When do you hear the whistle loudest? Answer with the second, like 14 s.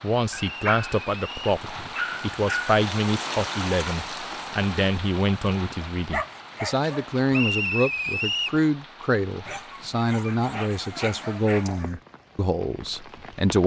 8 s.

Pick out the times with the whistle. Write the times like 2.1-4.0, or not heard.
0.3-1.6, 7.3-8.6.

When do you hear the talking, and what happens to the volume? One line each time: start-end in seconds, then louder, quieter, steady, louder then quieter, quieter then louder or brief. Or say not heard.
0.0-13.6 steady.